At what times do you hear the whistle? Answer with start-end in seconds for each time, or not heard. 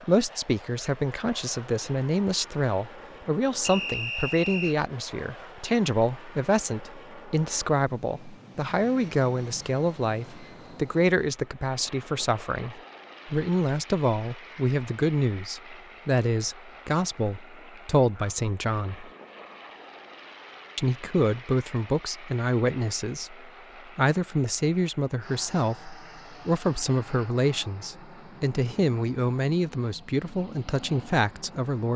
3.6-4.8.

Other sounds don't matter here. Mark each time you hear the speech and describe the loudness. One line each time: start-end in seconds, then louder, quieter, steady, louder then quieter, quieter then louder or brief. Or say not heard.
0.1-19.1 steady
20.8-31.9 steady.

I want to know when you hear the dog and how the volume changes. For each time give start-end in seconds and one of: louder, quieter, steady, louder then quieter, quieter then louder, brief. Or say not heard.
not heard.